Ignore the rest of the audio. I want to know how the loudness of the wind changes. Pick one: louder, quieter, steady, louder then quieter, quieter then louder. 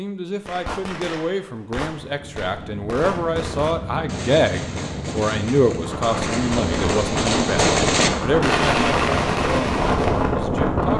louder.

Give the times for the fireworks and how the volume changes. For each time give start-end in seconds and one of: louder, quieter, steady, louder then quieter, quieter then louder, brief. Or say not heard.
0.5-10.3 louder.